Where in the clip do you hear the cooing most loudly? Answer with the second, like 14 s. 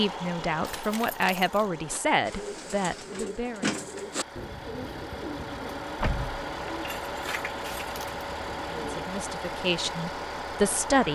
4 s.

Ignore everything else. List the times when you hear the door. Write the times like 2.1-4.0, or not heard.
not heard.